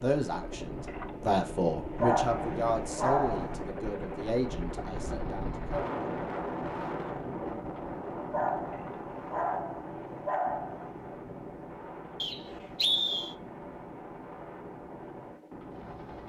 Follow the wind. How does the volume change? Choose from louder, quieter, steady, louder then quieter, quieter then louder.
louder then quieter.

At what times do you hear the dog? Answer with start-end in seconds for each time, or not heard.
2.0-3.6, 8.3-10.9.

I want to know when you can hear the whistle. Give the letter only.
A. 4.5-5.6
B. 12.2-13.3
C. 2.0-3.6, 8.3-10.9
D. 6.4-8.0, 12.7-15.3
B.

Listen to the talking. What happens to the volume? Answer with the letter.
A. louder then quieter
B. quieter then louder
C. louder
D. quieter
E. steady
D.